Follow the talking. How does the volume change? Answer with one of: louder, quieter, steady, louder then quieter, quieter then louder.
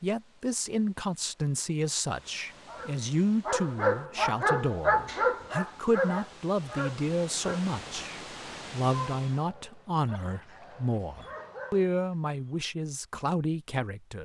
steady.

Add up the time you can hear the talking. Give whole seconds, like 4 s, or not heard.
14 s.